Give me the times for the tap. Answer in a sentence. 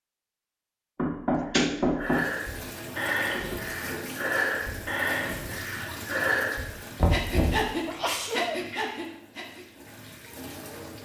The tap can be heard from 2.0 to 10.9 s.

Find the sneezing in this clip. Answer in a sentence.
The sneezing can be heard from 1.4 to 1.9 s and from 7.8 to 8.7 s.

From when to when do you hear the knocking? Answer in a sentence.
You can hear the knocking from 0.9 to 2.2 s and from 7.0 to 7.7 s.